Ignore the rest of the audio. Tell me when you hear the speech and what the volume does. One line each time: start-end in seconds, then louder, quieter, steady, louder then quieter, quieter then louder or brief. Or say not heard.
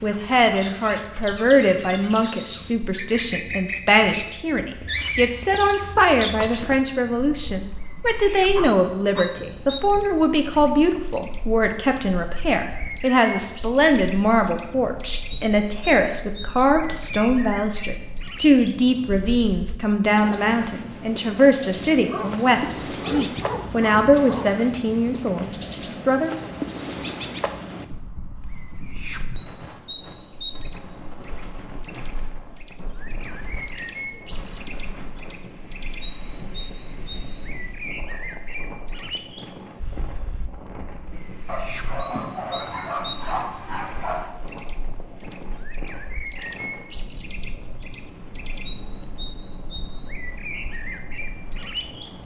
0.0-26.4 steady.